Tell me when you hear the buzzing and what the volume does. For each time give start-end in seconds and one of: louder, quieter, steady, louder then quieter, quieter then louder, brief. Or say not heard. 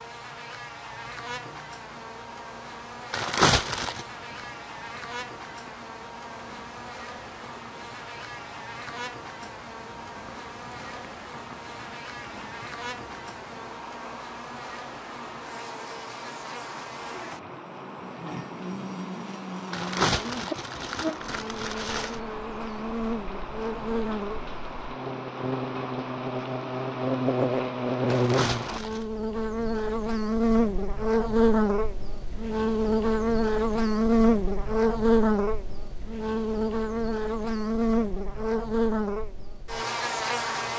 0.0-40.7 louder.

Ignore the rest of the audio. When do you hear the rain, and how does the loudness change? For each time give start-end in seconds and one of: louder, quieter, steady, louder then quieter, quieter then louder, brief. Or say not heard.
0.0-28.8 louder.